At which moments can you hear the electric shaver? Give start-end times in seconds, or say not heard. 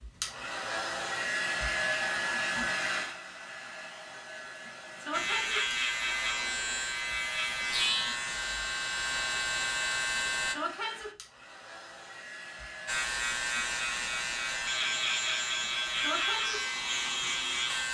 5.1-10.6, 12.8-17.9.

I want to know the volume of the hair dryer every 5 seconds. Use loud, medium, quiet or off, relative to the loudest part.
loud, medium, medium, medium.